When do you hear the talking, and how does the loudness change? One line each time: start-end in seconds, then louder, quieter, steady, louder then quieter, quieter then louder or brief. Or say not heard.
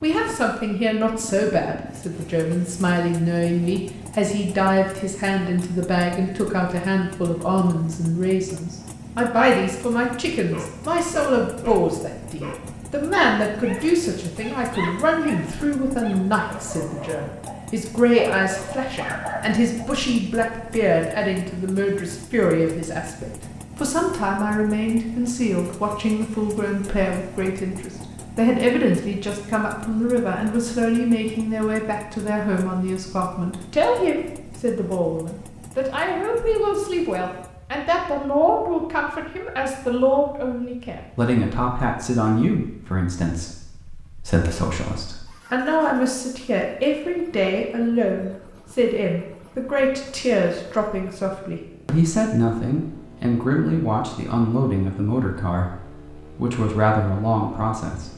0.0-58.1 steady.